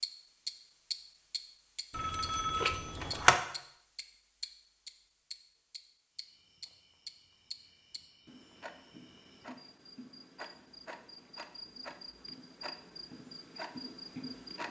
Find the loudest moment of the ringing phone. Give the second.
3 s.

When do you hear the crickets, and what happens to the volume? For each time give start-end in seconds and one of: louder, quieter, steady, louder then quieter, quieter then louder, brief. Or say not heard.
6.1-14.6 louder.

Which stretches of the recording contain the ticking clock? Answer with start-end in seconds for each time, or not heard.
0.0-14.6.